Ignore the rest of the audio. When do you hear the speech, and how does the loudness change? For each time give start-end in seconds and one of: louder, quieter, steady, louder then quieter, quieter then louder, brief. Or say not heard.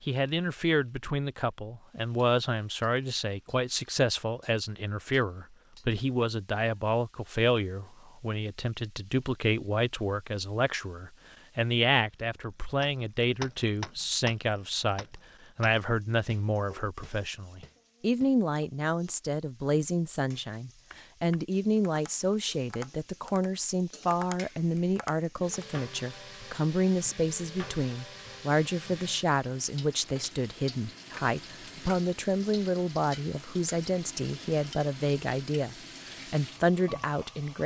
0.0-37.6 steady.